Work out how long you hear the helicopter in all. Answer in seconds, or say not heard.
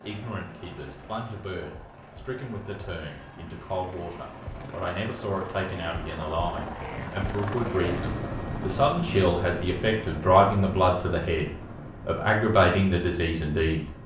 14 s.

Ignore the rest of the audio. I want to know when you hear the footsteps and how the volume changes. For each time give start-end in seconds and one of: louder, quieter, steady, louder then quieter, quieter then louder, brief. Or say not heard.
not heard.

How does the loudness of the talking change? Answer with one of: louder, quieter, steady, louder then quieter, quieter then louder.
louder.